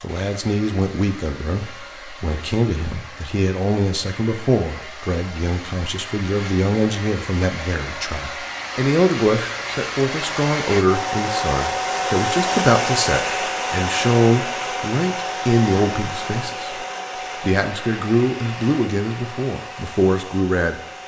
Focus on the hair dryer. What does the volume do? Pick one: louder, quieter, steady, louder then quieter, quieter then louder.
louder then quieter.